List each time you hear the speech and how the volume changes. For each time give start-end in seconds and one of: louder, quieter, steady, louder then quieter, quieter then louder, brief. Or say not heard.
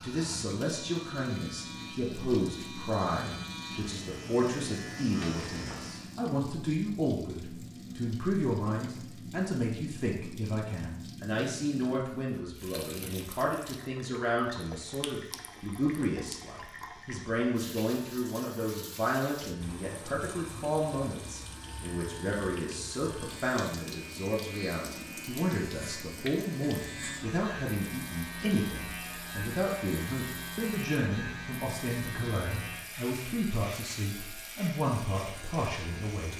0.0-36.3 steady.